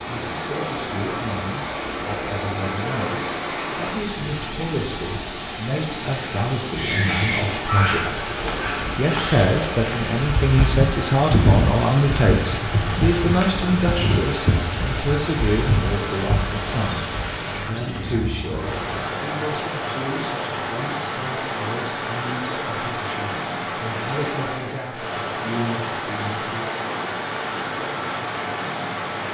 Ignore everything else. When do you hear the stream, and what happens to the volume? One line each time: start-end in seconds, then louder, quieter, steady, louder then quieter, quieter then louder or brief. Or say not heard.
0.0-29.2 steady.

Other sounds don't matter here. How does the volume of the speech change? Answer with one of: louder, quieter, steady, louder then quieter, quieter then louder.
louder then quieter.